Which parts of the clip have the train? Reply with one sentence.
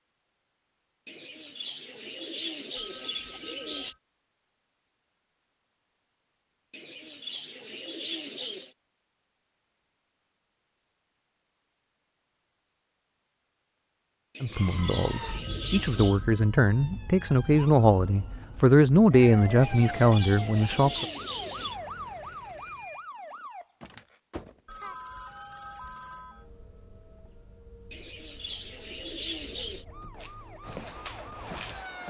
The train can't be heard in this clip.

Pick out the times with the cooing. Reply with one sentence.
The cooing can be heard from 1.1 to 4.0 s, from 6.7 to 8.8 s, from 14.3 to 16.2 s, from 19.6 to 21.8 s and from 27.9 to 29.9 s.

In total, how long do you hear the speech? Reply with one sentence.
You can hear the speech for 7 seconds altogether.